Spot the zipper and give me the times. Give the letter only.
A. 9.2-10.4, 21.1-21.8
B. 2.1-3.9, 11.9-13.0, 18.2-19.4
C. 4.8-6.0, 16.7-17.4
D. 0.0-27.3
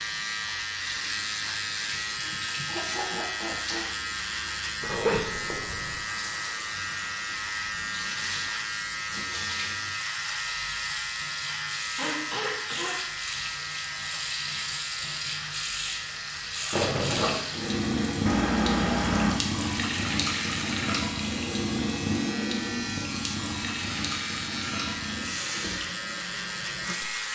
C.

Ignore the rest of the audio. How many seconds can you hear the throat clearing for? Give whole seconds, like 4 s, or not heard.
4 s.